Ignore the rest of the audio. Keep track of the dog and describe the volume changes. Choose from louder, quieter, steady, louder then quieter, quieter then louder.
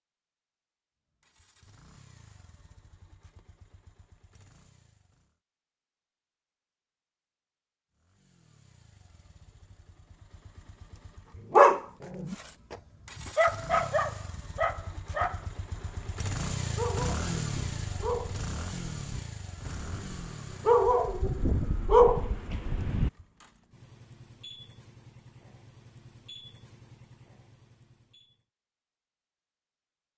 quieter then louder.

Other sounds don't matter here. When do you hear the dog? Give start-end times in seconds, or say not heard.
11.5-23.1.